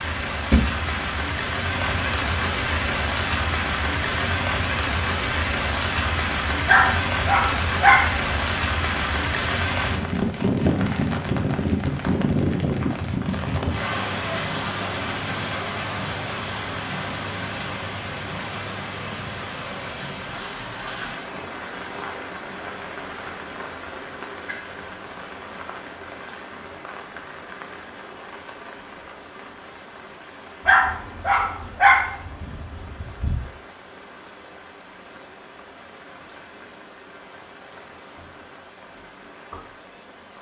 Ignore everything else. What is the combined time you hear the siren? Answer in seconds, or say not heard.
not heard.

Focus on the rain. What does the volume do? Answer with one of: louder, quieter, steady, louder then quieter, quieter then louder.
quieter.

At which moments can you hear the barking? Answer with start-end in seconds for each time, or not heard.
6.7-8.2, 30.6-33.4.